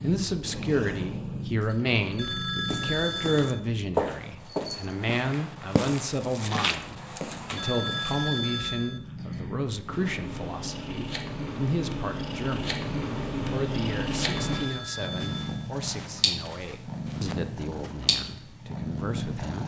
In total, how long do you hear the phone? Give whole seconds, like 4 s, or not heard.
4 s.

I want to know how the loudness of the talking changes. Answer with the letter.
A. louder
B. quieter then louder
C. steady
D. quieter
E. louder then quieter
D.